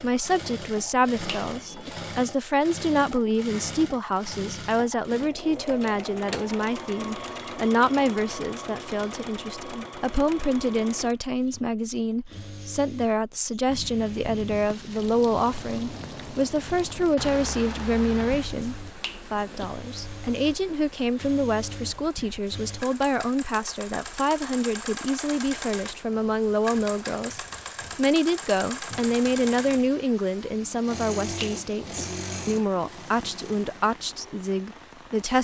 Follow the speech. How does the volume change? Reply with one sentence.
The volume of the speech stays about the same.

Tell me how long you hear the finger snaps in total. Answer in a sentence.
The finger snaps can be heard for 2 seconds in total.